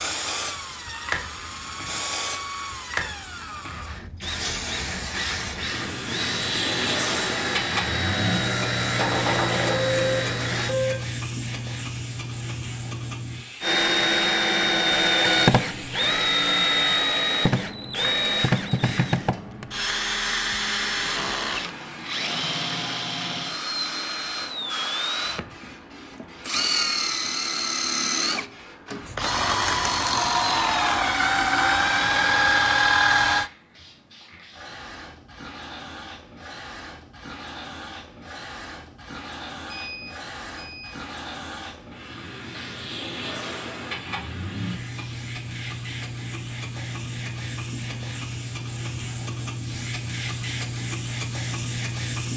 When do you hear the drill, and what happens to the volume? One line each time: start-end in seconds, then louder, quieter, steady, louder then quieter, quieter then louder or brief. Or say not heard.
0.0-10.8 louder
13.6-33.5 quieter then louder.